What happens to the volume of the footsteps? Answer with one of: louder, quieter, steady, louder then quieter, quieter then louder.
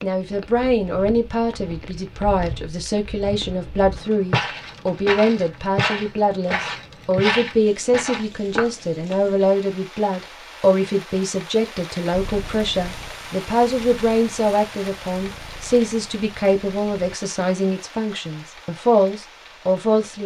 louder.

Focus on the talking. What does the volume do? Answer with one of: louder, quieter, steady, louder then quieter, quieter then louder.
steady.